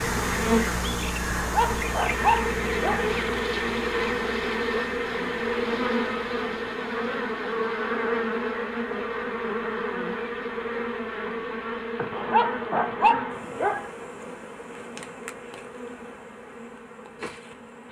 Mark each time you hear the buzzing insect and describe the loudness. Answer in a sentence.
The buzzing insect can be heard from 0.0 to 17.8 s, getting quieter.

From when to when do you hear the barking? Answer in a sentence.
You can hear the barking from 1.4 to 3.1 s and from 12.1 to 13.8 s.